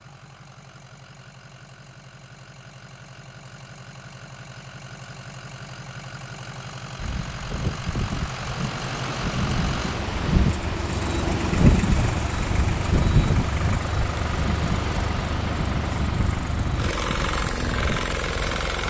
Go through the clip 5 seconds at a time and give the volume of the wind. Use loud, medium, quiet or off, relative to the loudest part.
off, medium, loud, medium.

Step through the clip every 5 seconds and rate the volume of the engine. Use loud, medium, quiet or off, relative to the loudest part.
quiet, medium, loud, loud.